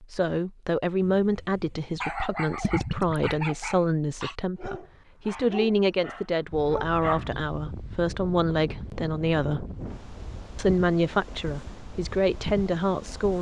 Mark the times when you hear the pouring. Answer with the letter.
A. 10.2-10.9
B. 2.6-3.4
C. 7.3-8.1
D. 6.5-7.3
B.